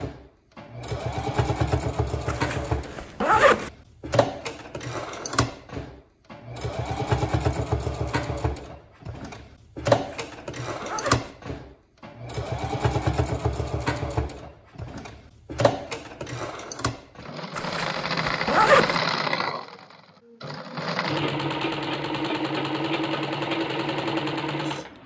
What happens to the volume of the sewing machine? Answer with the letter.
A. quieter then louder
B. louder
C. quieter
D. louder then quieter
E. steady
E.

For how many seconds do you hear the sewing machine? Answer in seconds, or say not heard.
25 s.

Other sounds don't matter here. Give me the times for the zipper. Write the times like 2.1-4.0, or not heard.
2.2-3.7, 9.9-11.3, 17.6-19.0.